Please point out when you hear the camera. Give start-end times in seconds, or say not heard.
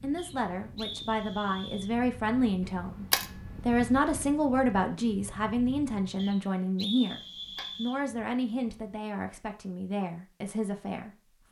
2.6-4.0, 7.0-9.0.